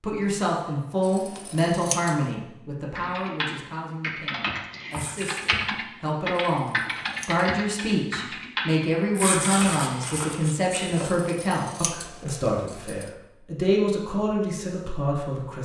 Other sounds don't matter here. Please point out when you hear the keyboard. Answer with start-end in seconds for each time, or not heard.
3.0-10.2.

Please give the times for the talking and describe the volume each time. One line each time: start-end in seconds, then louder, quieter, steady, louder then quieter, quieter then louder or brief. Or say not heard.
0.0-15.5 quieter then louder.